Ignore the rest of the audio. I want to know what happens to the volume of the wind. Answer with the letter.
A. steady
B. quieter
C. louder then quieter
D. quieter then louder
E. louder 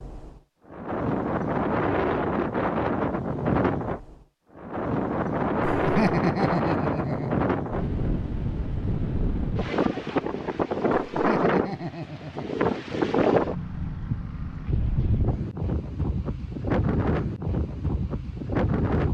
A.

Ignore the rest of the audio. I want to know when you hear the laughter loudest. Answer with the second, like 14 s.
6 s.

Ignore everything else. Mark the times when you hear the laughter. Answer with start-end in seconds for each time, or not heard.
5.6-7.3, 11.1-12.6.